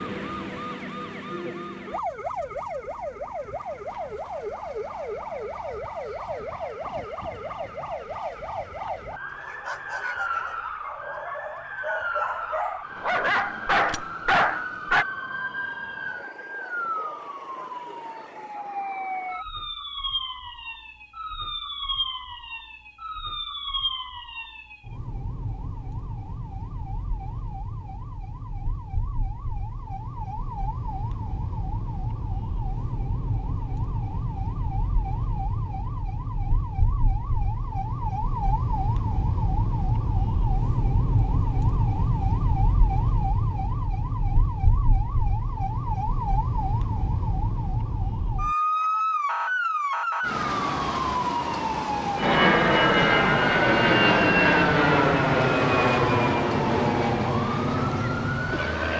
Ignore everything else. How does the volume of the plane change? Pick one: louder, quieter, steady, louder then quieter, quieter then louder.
quieter.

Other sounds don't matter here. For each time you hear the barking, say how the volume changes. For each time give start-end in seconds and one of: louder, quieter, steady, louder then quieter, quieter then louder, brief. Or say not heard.
9.3-15.1 louder.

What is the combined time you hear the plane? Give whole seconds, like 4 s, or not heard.
7 s.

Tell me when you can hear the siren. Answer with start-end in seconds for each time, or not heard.
0.0-58.9.